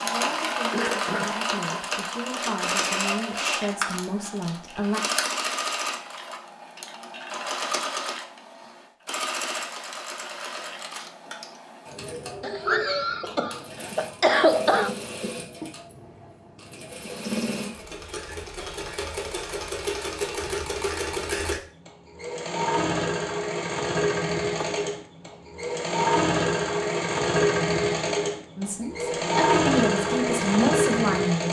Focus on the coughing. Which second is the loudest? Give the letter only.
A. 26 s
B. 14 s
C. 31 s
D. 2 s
B.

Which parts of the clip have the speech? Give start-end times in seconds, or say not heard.
0.0-5.0, 28.6-31.4.